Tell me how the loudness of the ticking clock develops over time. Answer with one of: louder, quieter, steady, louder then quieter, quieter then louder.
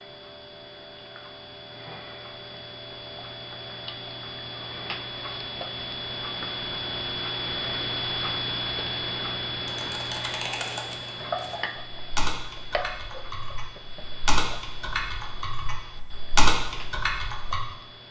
louder then quieter.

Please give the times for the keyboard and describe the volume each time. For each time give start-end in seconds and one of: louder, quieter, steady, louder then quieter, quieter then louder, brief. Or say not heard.
9.7-17.6 louder.